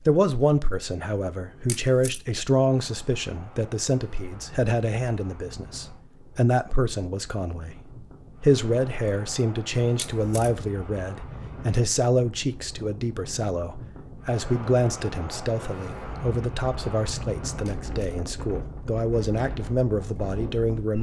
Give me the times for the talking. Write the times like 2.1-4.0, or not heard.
0.1-20.9.